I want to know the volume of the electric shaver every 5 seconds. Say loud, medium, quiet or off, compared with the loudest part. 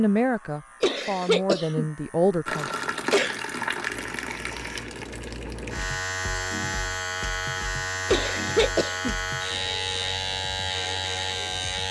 quiet, loud, loud.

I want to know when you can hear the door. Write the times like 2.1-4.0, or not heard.
not heard.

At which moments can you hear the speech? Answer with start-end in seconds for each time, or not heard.
0.0-2.7.